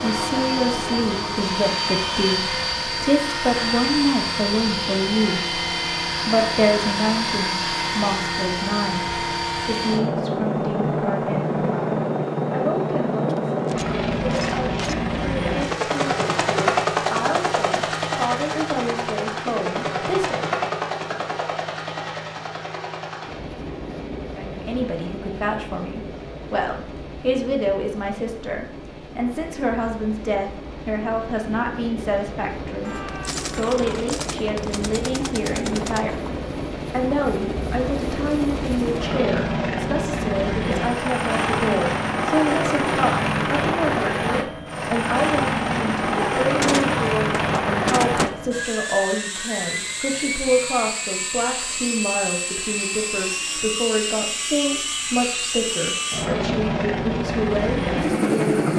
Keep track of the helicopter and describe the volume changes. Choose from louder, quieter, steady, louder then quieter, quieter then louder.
quieter then louder.